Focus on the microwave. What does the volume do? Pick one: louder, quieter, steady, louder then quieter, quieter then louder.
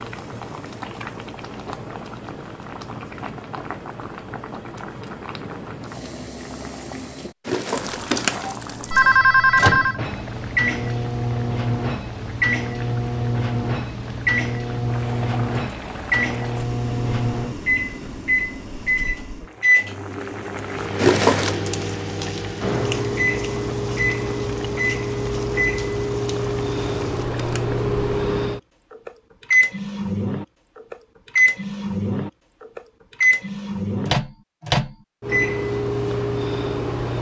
steady.